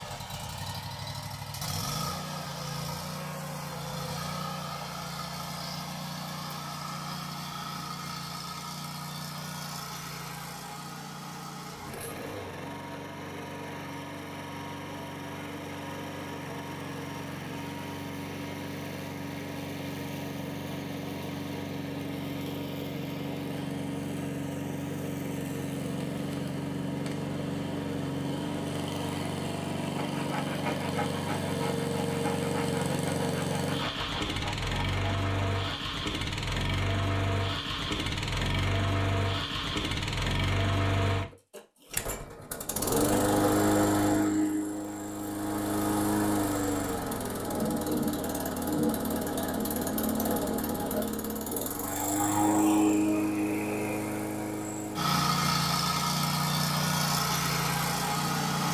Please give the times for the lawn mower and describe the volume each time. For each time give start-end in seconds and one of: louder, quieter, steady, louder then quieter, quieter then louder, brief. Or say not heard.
0.0-58.6 louder.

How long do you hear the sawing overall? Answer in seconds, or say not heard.
6 s.